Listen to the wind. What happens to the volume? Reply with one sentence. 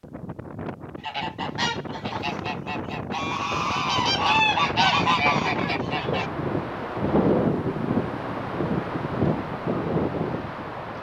The loudness of the wind goes up.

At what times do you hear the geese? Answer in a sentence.
You can hear the geese from 1.0 to 6.3 s.